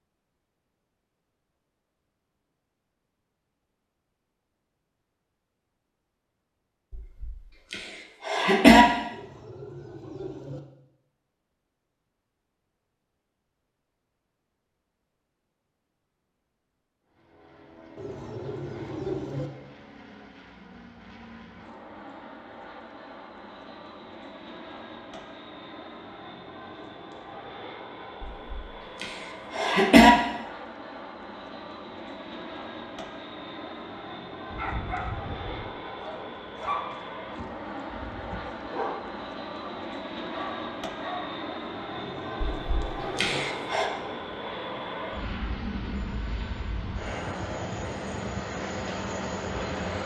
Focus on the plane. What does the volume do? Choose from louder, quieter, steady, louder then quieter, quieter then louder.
louder.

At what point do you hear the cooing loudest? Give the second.
19 s.